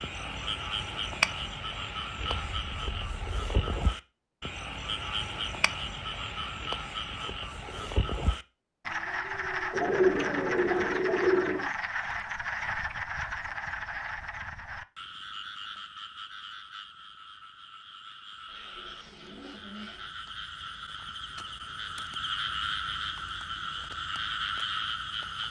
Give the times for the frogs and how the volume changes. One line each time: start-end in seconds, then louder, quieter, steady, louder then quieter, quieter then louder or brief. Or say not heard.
0.0-25.4 quieter then louder.